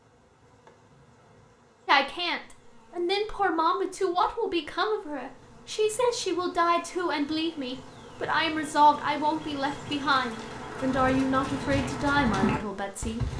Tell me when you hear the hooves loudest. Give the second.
12 s.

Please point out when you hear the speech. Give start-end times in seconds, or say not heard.
1.9-13.2.